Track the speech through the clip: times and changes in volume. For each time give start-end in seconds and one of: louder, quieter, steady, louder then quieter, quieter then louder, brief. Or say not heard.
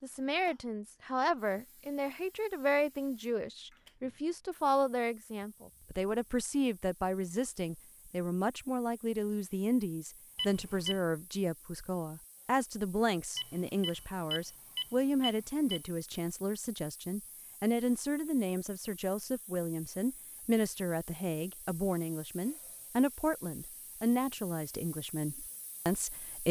0.0-26.4 steady.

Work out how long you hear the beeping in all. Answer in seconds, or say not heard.
3 s.